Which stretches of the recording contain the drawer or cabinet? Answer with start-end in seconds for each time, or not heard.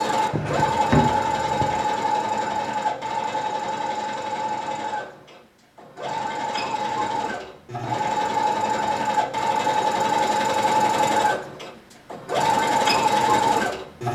0.3-1.8.